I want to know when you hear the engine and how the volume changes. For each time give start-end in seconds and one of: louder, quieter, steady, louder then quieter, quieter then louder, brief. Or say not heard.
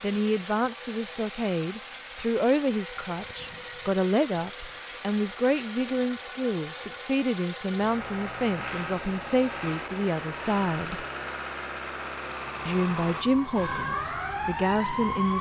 0.0-13.2 steady.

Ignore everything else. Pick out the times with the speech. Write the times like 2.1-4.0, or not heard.
0.0-11.1, 12.7-15.3.